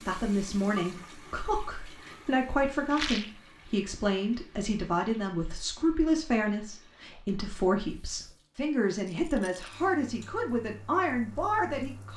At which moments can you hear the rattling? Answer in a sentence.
You can hear the rattling from 2.9 to 3.4 s and from 9.1 to 9.8 s.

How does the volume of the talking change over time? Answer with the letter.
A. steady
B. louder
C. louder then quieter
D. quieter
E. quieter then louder
A.